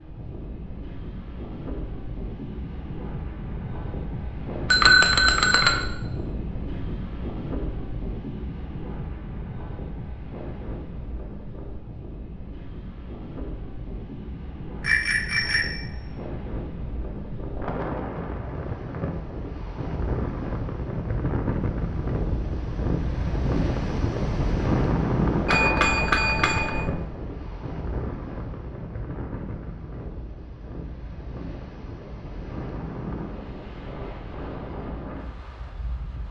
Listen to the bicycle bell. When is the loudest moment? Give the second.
5 s.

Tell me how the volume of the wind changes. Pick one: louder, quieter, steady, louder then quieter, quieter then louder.
louder then quieter.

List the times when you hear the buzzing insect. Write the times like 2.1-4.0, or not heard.
not heard.